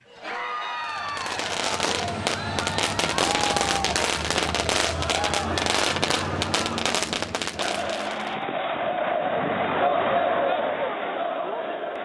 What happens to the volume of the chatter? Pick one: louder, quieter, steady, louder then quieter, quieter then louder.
louder.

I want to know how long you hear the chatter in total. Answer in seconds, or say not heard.
12 s.